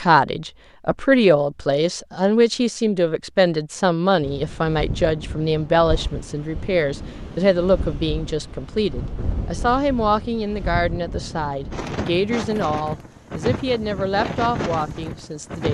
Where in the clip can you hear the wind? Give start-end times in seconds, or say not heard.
4.2-15.6.